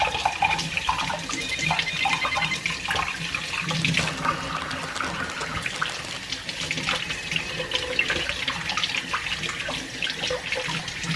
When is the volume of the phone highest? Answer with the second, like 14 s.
2 s.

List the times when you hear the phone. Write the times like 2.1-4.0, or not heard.
1.3-2.6, 7.0-8.2.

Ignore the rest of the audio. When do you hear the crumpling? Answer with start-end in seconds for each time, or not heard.
3.8-6.3.